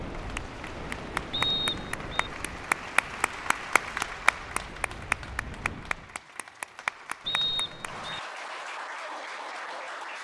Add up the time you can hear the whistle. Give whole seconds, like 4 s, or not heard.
2 s.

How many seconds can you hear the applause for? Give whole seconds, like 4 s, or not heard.
10 s.